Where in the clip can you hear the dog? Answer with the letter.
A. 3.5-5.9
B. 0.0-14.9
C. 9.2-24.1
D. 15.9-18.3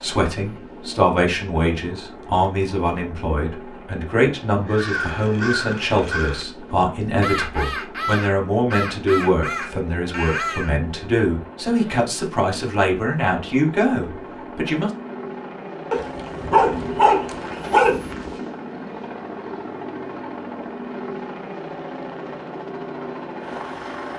D.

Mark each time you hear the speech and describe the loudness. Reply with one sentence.
You can hear the speech from 0.0 to 14.9 s, at a steady volume.